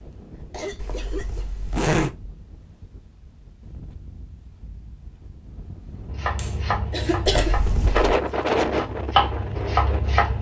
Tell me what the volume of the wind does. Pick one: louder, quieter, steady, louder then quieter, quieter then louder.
louder.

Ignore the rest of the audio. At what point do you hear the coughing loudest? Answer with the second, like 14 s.
7 s.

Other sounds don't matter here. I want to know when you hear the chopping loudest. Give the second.
9 s.